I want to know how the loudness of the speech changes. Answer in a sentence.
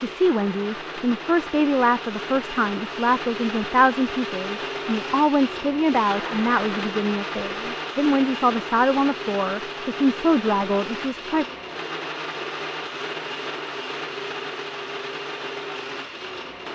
The loudness of the speech stays about the same.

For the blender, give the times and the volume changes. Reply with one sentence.
The blender can be heard from 0.0 to 16.7 s, at a steady volume.